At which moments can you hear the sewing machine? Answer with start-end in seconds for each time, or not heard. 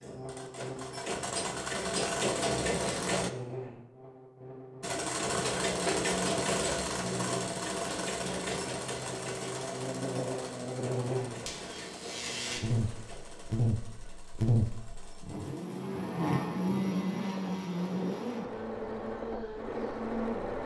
0.0-3.3, 4.8-20.6.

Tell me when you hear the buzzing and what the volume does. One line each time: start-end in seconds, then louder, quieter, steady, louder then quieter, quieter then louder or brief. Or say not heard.
0.0-20.6 louder.